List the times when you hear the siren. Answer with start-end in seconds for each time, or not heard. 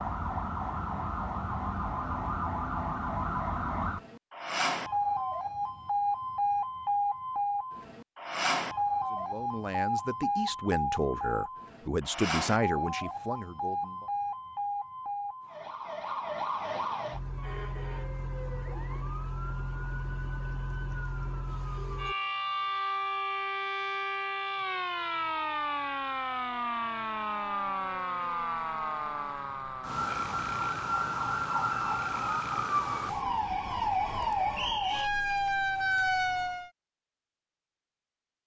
0.0-36.7.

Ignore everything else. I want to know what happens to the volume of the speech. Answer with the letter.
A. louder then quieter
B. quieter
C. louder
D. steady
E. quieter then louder
A.